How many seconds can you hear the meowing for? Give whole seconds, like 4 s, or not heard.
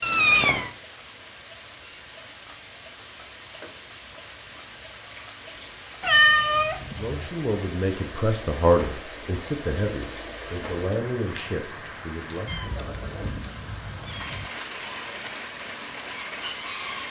4 s.